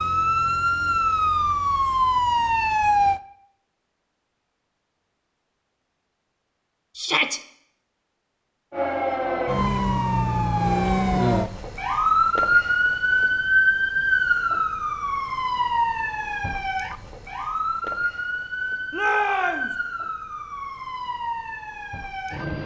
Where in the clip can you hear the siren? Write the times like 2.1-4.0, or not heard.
0.0-3.2, 8.7-22.6.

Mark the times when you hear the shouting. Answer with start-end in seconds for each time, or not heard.
7.0-7.4, 18.9-19.8.